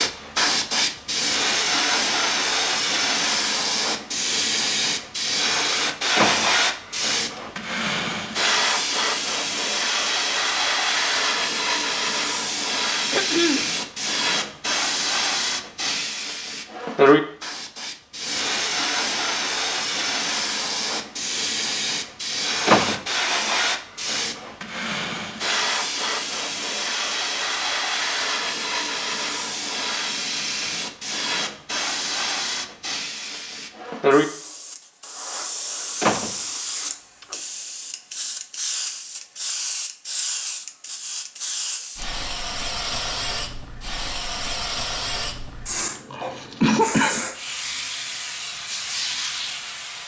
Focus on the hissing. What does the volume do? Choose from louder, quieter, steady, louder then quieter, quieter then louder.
quieter.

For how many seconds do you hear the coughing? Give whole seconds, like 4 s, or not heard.
2 s.